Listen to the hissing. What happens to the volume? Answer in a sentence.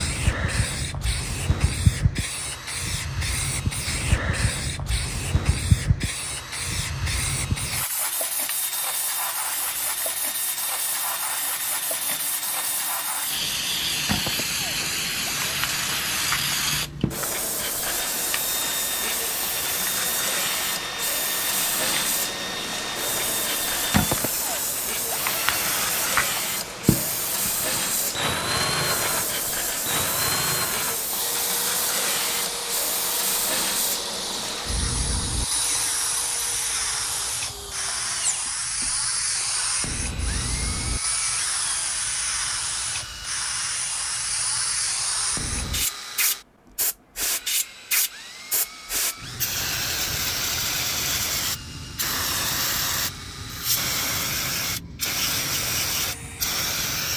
The volume of the hissing stays about the same.